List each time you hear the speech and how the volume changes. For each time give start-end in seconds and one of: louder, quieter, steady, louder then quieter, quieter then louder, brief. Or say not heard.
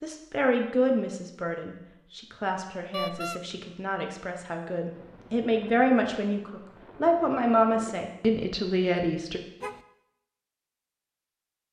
0.0-9.4 quieter then louder.